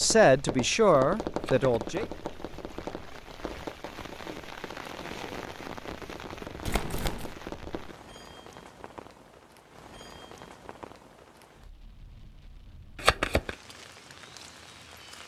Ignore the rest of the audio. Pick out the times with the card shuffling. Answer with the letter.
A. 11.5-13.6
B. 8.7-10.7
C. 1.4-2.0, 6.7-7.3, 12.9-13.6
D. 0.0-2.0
C.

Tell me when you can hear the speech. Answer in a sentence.
The speech can be heard from 0.0 to 2.0 s.